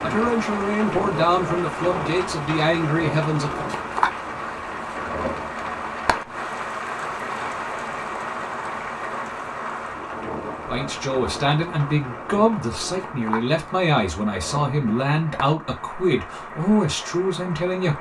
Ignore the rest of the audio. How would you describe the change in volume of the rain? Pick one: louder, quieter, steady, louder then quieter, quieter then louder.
quieter.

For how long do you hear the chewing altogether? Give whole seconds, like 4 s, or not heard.
not heard.